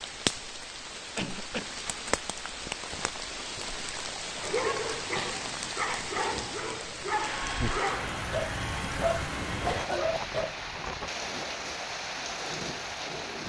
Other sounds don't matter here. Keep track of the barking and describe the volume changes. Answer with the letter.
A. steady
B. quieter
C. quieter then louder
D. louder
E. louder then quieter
A.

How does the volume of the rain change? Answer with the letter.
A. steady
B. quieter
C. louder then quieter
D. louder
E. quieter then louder
A.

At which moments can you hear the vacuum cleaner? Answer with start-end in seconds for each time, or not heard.
7.2-9.8.